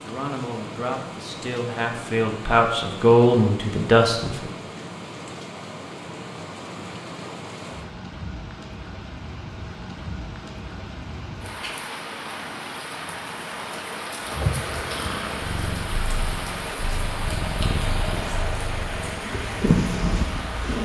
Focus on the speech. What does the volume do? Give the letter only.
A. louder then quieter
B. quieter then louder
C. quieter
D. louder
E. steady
D.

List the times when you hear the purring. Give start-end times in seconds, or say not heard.
14.2-20.7.